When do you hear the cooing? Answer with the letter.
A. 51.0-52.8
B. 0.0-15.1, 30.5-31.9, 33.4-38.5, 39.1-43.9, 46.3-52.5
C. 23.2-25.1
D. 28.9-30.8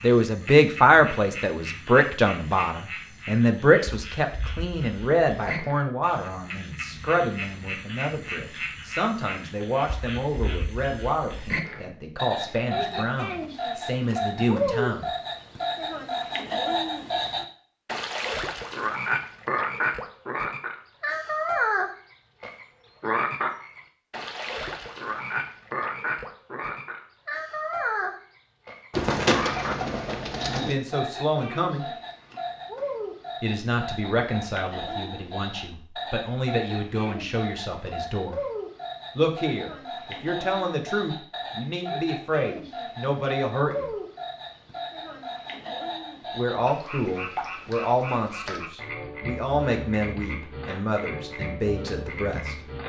D.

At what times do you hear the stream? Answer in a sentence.
The stream can't be heard in this clip.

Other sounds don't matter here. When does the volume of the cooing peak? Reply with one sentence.
The loudest moment of the cooing is at 29 seconds.